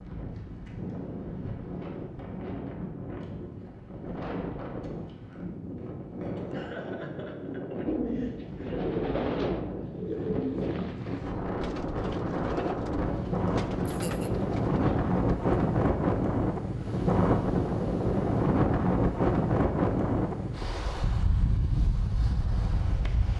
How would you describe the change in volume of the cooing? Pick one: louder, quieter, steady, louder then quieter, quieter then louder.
quieter.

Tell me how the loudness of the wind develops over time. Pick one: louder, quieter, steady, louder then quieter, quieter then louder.
louder.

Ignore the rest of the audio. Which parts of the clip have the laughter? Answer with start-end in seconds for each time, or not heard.
6.5-8.8, 13.8-14.3.